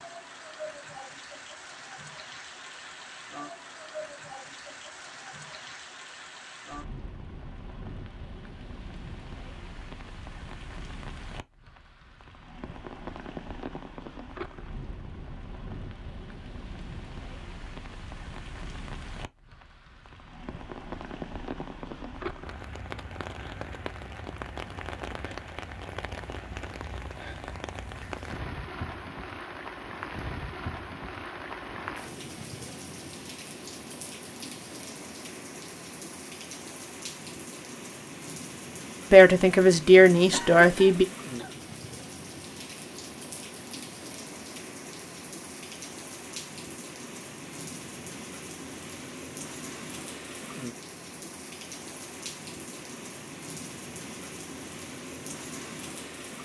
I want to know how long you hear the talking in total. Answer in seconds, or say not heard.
2 s.